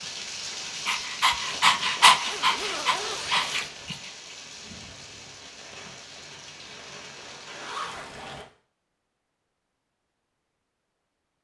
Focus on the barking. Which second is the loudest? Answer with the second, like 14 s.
2 s.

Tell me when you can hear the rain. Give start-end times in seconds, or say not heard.
0.0-8.4.